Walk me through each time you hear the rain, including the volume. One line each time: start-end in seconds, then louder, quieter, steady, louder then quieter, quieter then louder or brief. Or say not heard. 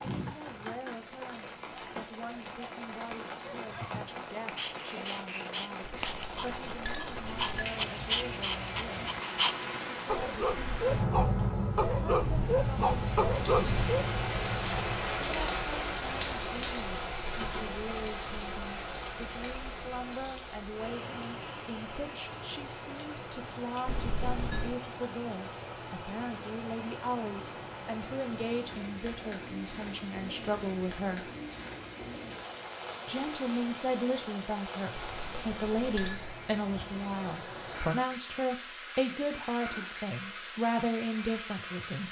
0.0-42.0 louder then quieter.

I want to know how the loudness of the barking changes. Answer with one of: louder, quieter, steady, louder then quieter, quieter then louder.
louder.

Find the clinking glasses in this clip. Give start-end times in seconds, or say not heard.
5.8-7.7, 23.9-24.8, 35.0-36.4.